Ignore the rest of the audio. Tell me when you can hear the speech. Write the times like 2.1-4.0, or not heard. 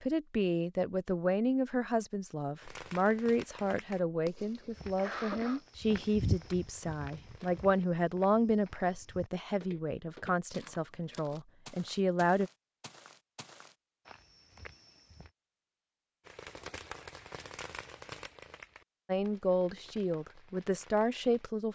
0.0-12.5, 19.1-21.7.